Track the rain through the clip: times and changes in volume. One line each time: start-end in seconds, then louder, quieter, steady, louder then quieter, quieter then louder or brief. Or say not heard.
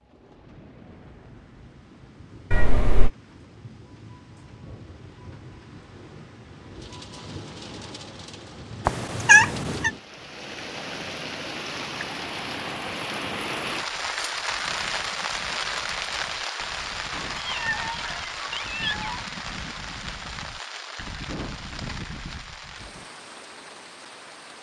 0.0-24.5 louder then quieter.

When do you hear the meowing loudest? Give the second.
9 s.